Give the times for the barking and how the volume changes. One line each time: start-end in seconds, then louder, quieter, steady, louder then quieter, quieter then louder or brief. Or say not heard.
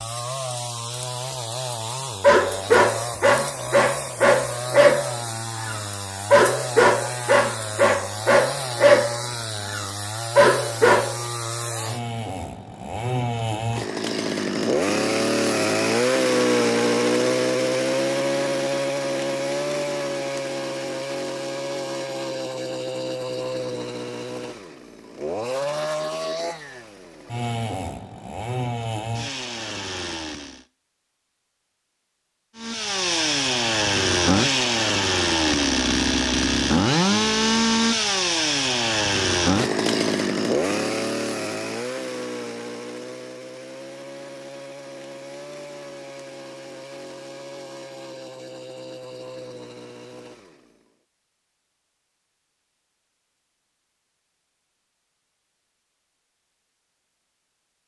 2.2-11.2 steady.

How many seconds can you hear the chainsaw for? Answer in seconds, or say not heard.
49 s.